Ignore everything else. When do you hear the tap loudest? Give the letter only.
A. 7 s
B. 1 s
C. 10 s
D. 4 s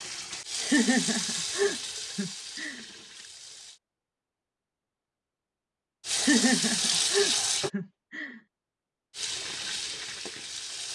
A.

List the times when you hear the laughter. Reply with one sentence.
The laughter can be heard from 0.6 to 2.9 s and from 6.2 to 8.4 s.